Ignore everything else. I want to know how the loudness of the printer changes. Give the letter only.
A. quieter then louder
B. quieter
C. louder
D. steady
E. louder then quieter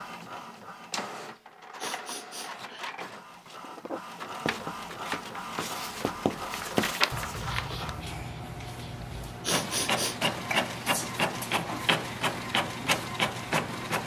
C.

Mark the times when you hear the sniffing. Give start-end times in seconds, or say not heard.
1.4-2.9, 9.0-10.2.